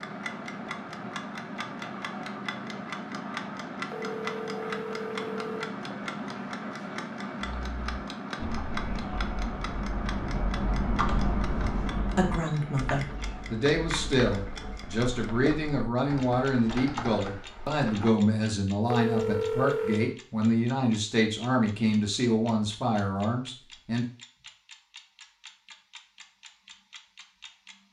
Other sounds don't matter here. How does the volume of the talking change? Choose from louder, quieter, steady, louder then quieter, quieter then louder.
steady.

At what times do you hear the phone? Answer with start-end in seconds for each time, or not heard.
3.9-5.8, 18.9-20.1.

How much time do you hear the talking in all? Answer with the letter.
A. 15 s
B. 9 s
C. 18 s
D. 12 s
D.